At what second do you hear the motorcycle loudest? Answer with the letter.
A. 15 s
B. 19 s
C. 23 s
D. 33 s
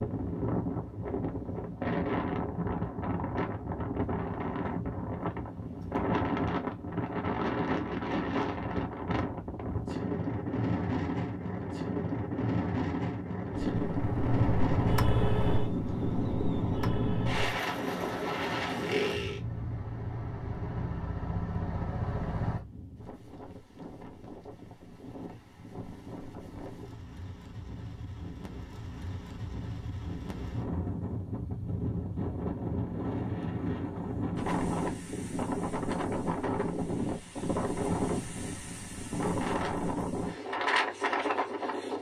A.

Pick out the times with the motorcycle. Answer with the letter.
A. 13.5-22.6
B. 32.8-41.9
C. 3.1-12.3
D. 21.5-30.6
A.